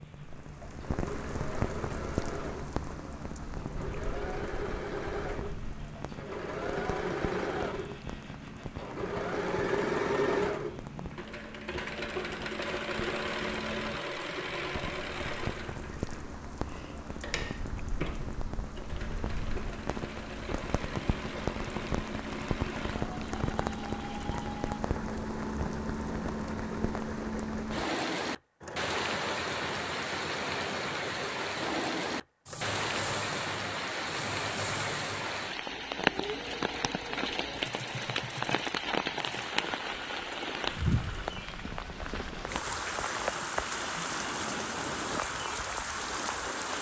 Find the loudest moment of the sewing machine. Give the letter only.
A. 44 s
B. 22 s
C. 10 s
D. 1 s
C.